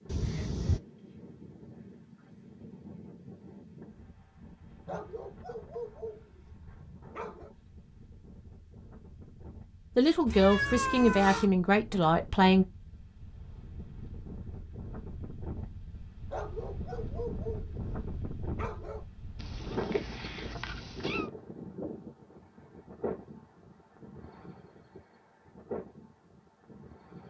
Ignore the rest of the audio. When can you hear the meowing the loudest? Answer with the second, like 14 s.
11 s.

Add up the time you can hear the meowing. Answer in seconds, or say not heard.
4 s.